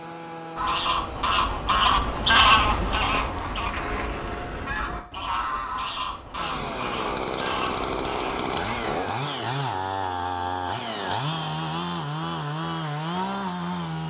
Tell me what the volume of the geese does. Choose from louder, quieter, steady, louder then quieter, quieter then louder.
quieter.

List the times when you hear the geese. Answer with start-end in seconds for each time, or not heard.
0.6-9.0.